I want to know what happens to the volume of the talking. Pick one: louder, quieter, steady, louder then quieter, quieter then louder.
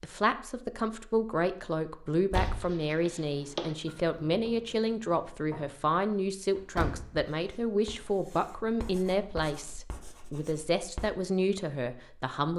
steady.